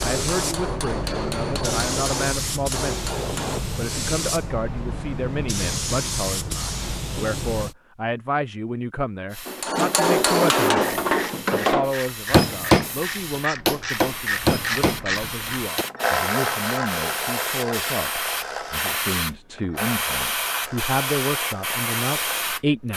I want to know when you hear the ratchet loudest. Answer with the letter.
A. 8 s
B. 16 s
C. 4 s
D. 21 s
B.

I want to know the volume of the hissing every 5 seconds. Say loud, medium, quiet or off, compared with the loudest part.
loud, loud, medium, loud, loud.